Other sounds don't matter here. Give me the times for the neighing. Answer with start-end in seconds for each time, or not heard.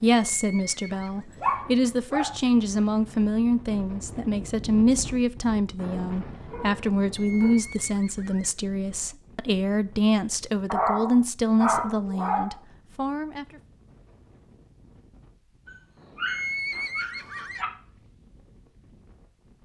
0.3-1.2, 7.2-8.5, 16.2-17.6.